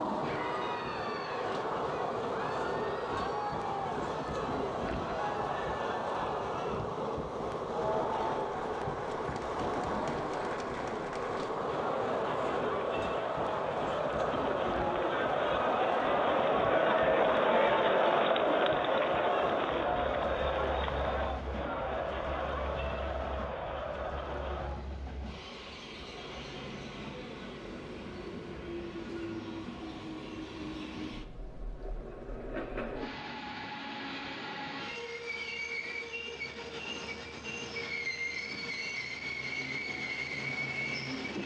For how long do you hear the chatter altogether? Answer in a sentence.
You can hear the chatter for 25 seconds altogether.